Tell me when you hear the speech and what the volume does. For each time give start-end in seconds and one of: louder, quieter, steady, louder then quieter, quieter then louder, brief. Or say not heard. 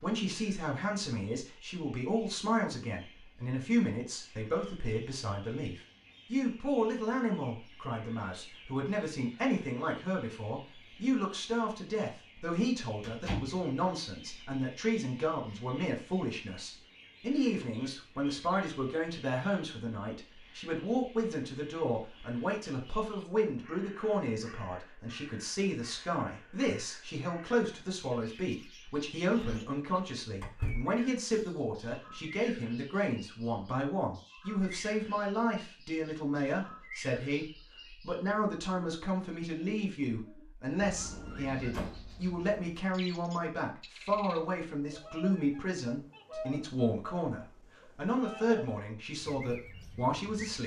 0.0-50.6 steady.